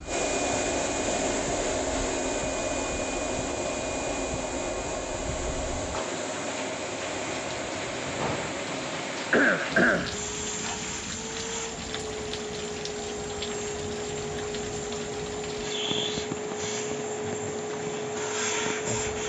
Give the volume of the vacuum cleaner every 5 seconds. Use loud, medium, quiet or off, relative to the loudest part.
loud, medium, medium, loud.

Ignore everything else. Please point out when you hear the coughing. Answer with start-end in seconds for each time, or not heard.
9.3-10.2.